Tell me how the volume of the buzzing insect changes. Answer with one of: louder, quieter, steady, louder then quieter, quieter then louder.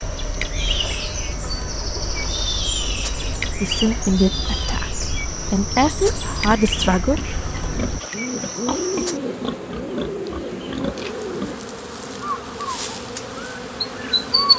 steady.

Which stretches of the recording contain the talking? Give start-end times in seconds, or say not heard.
3.6-7.2.